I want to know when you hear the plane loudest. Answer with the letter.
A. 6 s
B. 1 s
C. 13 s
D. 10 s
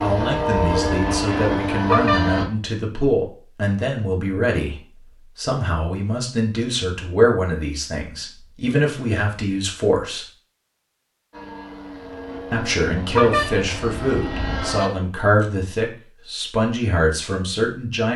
B.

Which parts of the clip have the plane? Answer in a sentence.
You can hear the plane from 0.0 to 2.5 s and from 11.3 to 14.9 s.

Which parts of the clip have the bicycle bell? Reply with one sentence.
You can hear the bicycle bell from 1.9 to 2.4 s and from 13.1 to 13.7 s.